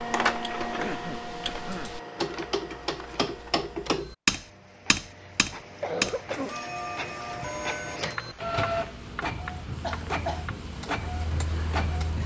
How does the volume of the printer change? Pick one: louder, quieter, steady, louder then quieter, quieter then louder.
quieter then louder.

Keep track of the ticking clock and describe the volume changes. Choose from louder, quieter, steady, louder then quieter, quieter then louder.
louder then quieter.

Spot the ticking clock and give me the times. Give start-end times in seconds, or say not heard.
0.2-12.2.